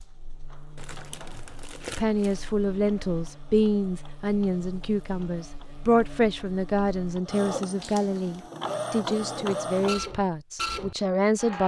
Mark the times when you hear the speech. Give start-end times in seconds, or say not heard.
1.9-11.6.